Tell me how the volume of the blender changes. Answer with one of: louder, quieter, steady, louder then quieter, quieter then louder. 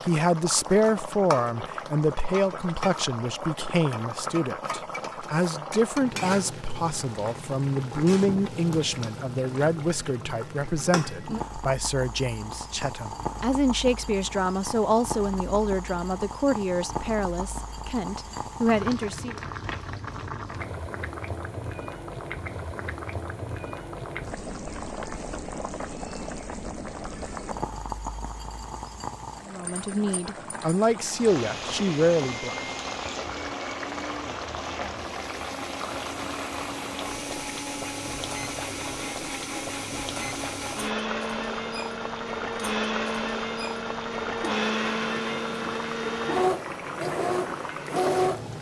louder.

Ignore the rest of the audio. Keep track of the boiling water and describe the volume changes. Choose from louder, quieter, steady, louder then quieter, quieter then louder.
steady.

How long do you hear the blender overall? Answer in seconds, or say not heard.
17 s.